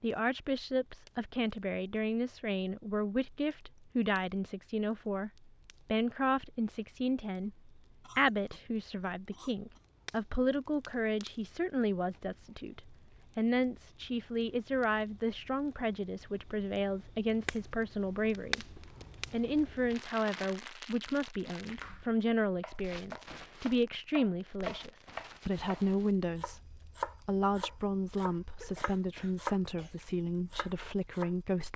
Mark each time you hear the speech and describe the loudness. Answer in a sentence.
You can hear the speech from 0.0 to 31.7 s, at a steady volume.